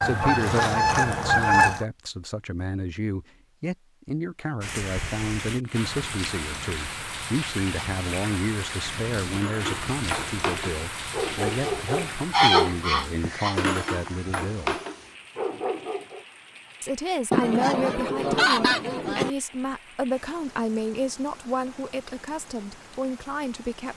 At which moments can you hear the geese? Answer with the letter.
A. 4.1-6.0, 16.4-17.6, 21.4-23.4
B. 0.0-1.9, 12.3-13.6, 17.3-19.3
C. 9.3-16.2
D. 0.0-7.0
B.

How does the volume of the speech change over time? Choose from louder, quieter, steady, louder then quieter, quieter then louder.
steady.